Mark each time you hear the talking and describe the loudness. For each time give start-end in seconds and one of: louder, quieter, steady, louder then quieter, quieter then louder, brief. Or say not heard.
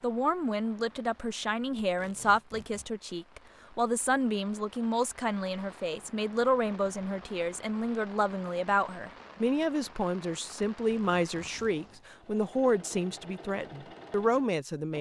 0.0-14.9 steady.